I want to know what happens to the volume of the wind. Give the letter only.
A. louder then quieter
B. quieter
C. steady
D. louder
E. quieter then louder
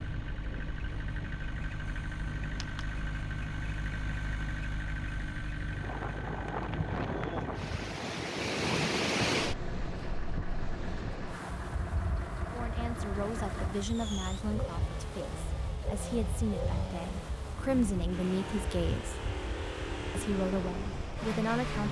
A.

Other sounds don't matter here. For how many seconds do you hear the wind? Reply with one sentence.
You can hear the wind for 22 seconds altogether.